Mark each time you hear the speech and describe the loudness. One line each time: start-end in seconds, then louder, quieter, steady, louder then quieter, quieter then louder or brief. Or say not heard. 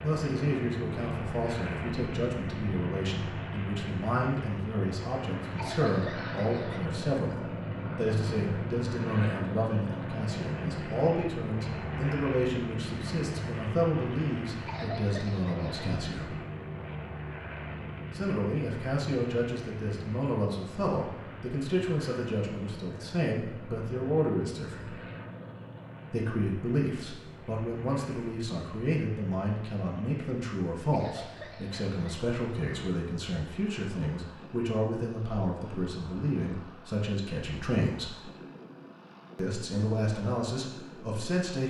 0.0-16.4 steady
18.1-24.9 steady
26.1-38.2 steady
39.4-41.6 brief.